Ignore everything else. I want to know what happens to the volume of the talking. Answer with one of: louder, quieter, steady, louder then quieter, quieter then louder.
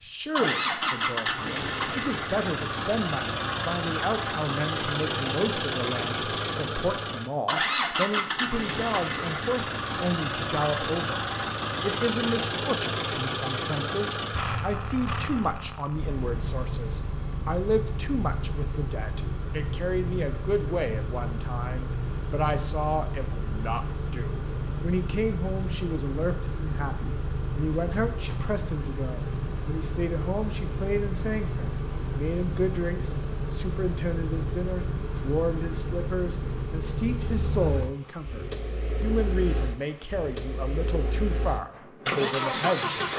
steady.